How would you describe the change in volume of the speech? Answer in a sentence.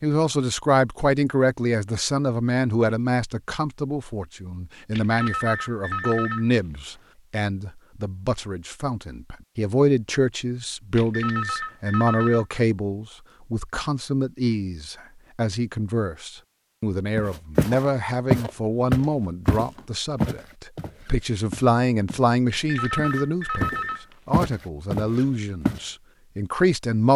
The volume of the speech stays about the same.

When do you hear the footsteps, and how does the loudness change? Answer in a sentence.
The footsteps can be heard from 17.1 to 22.3 s, getting quieter; and briefly from 22.9 to 25.8 s.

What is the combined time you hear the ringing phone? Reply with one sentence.
You can hear the ringing phone for 5 seconds altogether.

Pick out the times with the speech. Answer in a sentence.
You can hear the speech from 0.0 to 27.1 s.